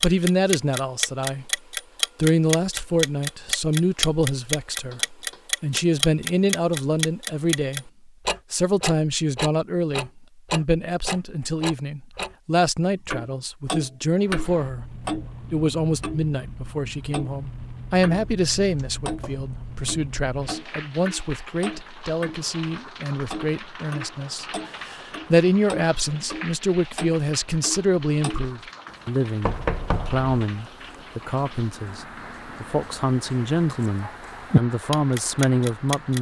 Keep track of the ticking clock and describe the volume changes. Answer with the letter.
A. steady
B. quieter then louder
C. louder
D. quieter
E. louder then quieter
B.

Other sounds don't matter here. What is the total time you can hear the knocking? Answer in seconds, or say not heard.
3 s.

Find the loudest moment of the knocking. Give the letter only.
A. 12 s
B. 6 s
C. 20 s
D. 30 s
D.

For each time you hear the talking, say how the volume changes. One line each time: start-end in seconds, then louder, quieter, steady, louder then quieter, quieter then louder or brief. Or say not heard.
0.0-36.1 steady.